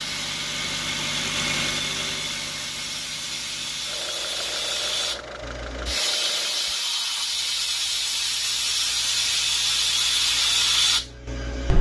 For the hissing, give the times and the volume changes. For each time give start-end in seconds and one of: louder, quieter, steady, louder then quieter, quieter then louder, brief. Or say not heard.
0.0-11.7 louder.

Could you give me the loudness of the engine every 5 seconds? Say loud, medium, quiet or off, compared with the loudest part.
loud, medium, off.